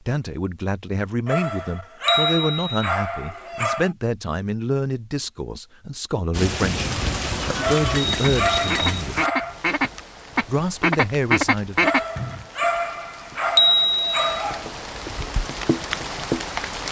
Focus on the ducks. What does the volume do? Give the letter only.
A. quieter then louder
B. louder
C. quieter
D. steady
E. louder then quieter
B.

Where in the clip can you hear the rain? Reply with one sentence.
You can hear the rain from 6.3 to 16.8 s.